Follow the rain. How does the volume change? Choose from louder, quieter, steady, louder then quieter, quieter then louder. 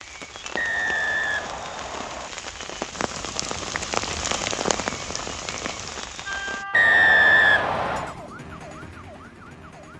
louder then quieter.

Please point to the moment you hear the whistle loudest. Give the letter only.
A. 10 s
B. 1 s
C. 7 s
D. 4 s
C.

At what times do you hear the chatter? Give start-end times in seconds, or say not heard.
not heard.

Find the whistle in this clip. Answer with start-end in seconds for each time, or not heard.
0.6-2.3, 6.7-8.2.